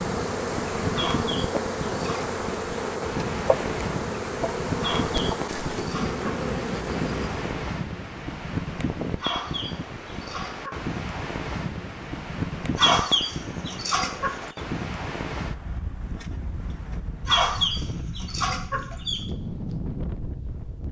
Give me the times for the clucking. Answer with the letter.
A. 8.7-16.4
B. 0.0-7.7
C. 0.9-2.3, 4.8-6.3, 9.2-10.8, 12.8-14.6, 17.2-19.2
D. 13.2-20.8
C.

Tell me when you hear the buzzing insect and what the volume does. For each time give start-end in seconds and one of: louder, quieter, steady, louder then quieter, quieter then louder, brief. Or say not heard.
0.0-7.7 steady.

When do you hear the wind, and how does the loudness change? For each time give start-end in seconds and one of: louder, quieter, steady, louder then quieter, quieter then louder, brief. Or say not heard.
0.0-20.8 steady.